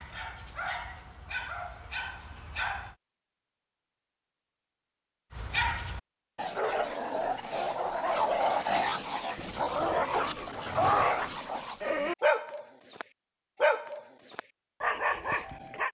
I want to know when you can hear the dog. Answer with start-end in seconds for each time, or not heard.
0.0-3.0, 5.3-15.8.